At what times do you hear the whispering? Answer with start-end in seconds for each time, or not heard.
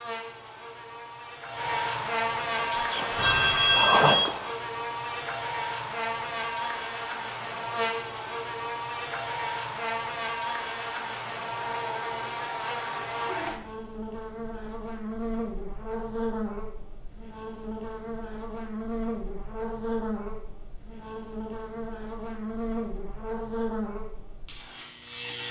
2.5-4.5.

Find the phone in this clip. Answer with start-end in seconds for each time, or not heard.
3.1-4.2.